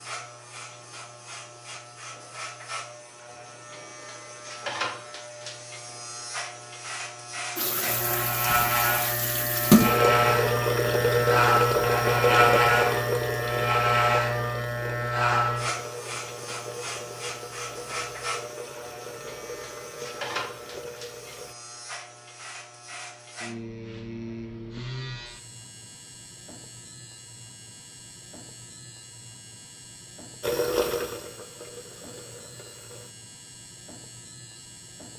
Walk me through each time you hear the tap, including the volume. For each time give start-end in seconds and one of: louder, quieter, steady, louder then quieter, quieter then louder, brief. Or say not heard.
7.5-21.6 quieter
30.4-33.1 brief.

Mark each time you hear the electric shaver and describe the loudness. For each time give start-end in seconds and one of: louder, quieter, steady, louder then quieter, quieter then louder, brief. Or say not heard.
0.0-35.1 louder then quieter.